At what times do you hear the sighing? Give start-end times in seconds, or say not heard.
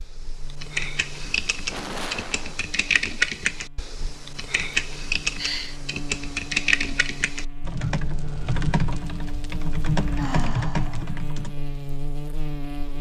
1.6-2.6, 5.3-5.8, 10.1-11.1.